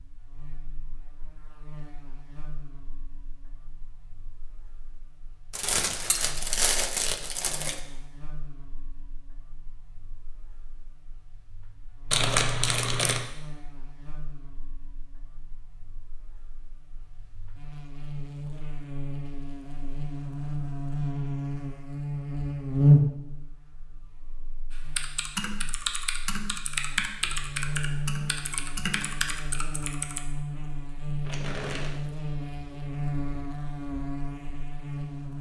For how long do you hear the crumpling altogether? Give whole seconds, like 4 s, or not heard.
4 s.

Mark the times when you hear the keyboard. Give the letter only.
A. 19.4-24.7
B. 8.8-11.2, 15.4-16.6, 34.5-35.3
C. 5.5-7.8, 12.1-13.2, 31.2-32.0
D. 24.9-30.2
D.